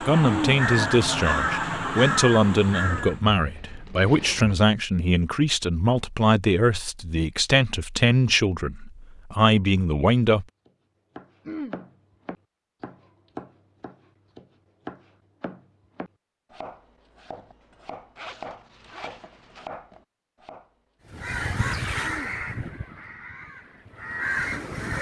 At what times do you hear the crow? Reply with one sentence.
The crow can be heard from 0.0 to 3.2 s and from 21.1 to 24.9 s.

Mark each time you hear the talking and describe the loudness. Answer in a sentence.
You can hear the talking from 0.0 to 10.4 s, at a steady volume.